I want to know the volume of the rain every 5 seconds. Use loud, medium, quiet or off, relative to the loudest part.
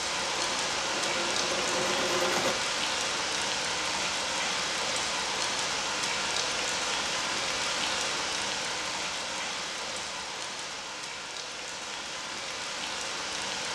loud, loud, medium.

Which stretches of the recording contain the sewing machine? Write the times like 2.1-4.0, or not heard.
0.1-2.5.